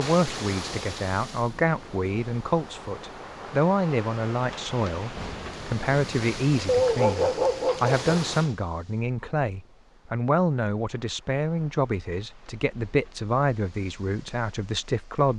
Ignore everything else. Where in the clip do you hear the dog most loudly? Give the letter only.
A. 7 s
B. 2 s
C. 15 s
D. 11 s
A.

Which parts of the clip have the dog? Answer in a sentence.
You can hear the dog from 6.7 to 8.1 s.